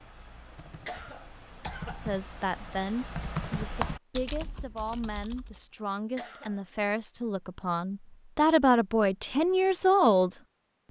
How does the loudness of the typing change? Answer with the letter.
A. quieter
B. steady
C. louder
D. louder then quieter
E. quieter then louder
D.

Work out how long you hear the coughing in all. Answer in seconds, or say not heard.
3 s.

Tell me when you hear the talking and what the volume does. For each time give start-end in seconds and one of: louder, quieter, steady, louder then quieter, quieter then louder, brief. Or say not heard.
2.0-10.8 louder.